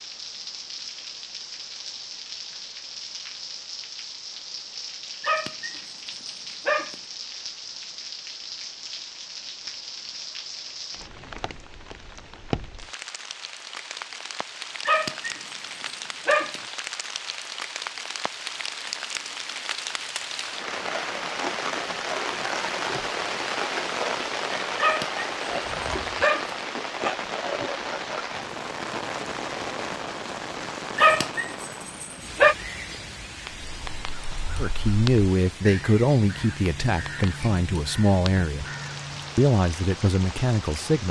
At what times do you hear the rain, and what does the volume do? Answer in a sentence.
The rain can be heard from 0.0 to 41.0 s, getting louder then quieter.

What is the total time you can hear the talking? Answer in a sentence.
The talking can be heard for 6 seconds in total.